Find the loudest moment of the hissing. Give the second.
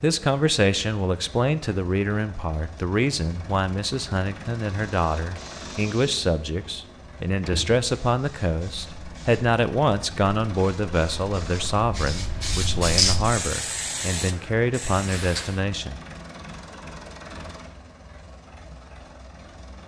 13 s.